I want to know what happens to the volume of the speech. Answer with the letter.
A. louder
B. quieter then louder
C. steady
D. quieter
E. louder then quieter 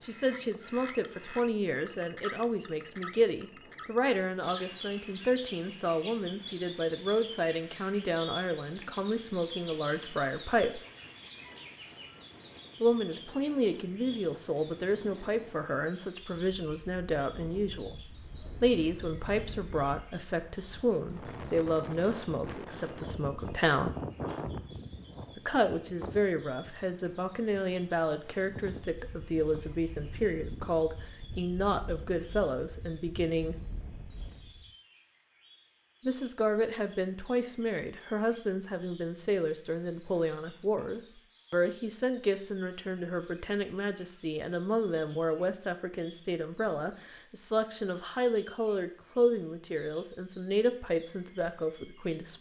C.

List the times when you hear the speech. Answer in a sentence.
You can hear the speech from 0.0 to 10.8 s, from 12.8 to 17.9 s, from 18.6 to 23.9 s, from 25.4 to 33.5 s and from 36.0 to 52.3 s.